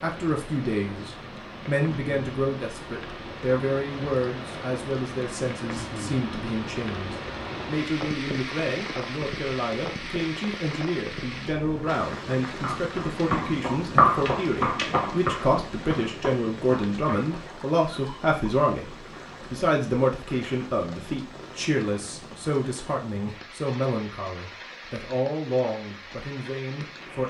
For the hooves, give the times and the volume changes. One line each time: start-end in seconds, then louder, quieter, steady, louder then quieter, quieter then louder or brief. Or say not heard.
12.5-17.6 louder then quieter.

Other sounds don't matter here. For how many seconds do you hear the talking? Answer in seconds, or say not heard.
27 s.